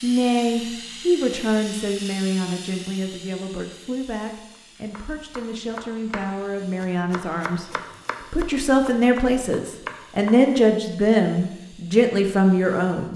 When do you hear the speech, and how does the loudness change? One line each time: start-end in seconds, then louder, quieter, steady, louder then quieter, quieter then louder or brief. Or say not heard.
0.0-13.1 quieter then louder.